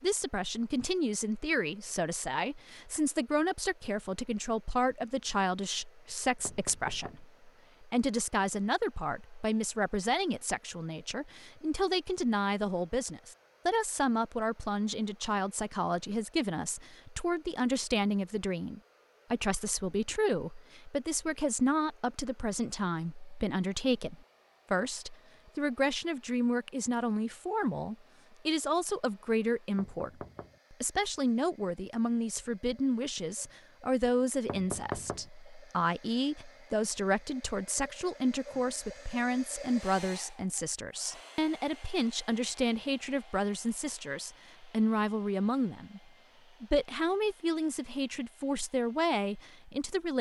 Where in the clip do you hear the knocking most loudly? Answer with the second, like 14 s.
35 s.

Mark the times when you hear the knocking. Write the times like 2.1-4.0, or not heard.
6.5-7.2, 29.8-30.6, 34.5-35.3.